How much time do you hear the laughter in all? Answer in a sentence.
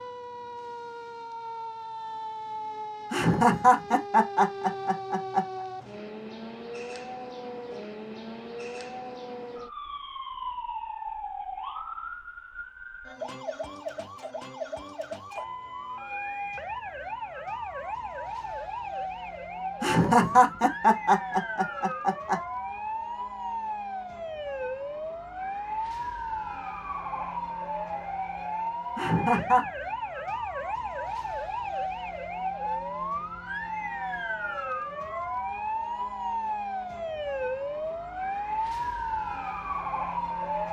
The laughter can be heard for 6 seconds in total.